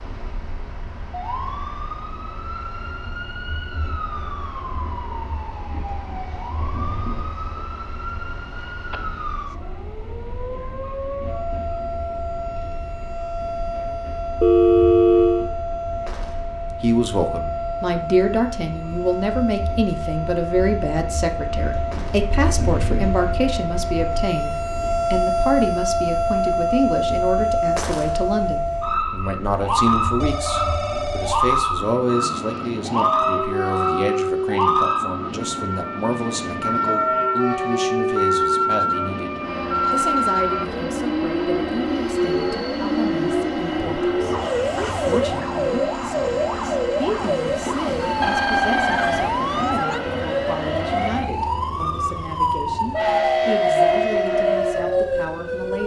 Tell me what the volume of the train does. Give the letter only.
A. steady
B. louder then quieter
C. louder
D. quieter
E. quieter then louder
C.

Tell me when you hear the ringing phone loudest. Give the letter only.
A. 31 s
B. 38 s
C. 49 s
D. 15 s
D.